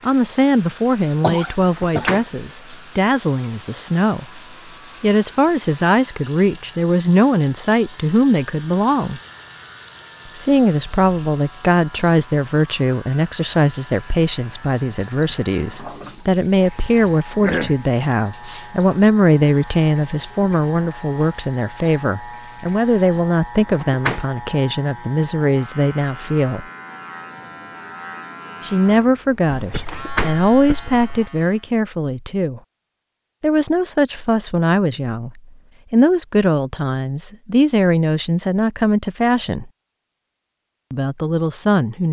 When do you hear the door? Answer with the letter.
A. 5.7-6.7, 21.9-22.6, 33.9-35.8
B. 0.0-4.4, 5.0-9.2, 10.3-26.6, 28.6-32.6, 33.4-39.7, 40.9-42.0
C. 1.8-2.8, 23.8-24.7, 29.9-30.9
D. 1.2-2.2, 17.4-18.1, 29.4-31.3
C.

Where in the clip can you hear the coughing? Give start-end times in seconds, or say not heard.
1.2-2.2, 17.4-18.1, 29.4-31.3.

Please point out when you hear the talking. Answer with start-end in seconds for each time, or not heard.
0.0-4.4, 5.0-9.2, 10.3-26.6, 28.6-32.6, 33.4-39.7, 40.9-42.0.